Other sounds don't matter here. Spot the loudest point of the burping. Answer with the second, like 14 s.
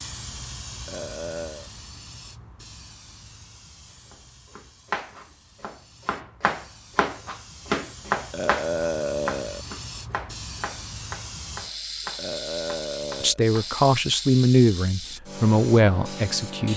9 s.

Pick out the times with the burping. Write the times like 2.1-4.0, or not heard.
0.8-1.7, 8.3-9.7, 12.2-13.4.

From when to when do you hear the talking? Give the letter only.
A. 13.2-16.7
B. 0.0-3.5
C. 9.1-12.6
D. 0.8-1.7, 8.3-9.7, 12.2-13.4
A.